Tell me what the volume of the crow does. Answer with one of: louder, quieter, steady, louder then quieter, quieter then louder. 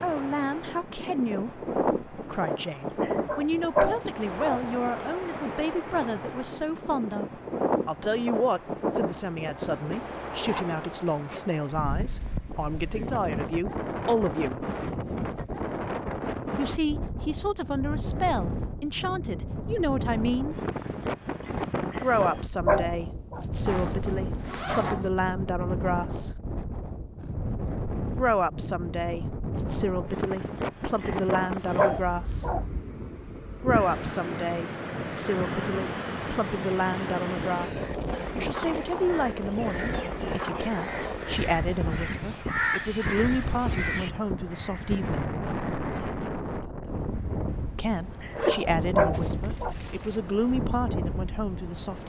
louder then quieter.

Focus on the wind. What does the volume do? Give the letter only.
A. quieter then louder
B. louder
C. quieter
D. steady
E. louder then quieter
D.